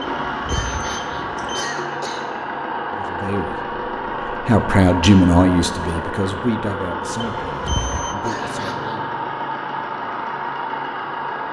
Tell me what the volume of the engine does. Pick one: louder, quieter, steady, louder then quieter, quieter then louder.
steady.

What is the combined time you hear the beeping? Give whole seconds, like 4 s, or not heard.
3 s.